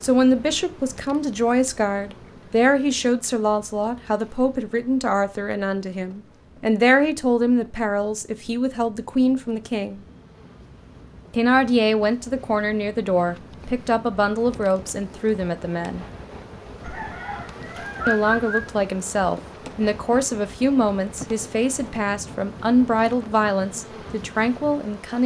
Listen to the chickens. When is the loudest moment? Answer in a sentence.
The loudest moment of the chickens is at 18 seconds.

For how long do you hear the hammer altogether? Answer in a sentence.
The hammer can't be heard in this clip.